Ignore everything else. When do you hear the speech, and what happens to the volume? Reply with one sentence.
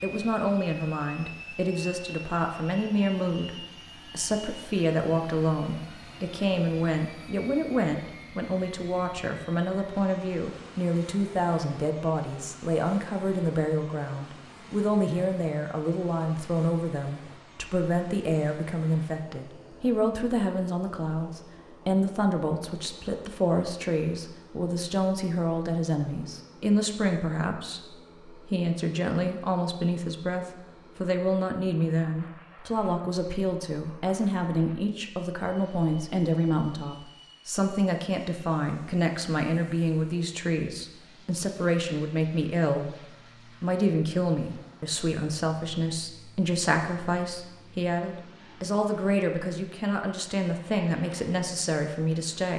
You can hear the speech from 0.0 to 43.0 s, at a steady volume; and from 43.6 to 52.5 s, at a steady volume.